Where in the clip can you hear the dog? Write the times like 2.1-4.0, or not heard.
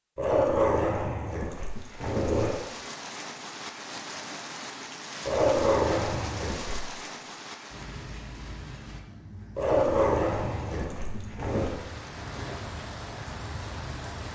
0.1-2.6, 5.2-6.8, 9.6-11.7.